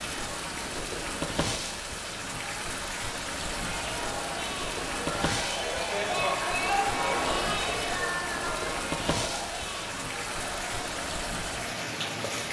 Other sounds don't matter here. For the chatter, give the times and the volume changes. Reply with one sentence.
The chatter can be heard from 3.6 to 12.4 s, getting louder then quieter.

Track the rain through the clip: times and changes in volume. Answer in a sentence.
The rain can be heard from 0.0 to 12.4 s, at a steady volume.